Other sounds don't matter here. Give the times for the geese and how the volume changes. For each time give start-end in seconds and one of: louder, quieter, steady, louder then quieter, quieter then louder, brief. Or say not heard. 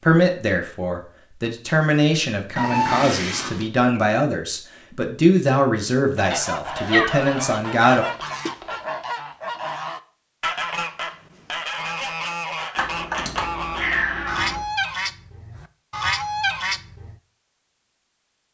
6.2-17.1 steady.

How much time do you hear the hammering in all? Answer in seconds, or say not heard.
not heard.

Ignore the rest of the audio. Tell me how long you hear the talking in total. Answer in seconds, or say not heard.
8 s.